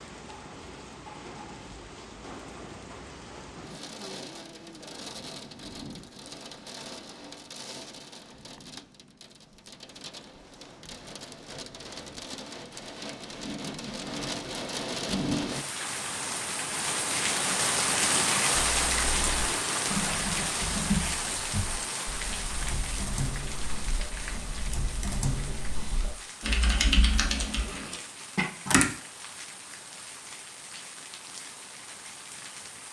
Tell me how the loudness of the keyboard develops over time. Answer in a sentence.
The loudness of the keyboard goes down, then up.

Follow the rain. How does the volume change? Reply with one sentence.
The loudness of the rain goes up, then down.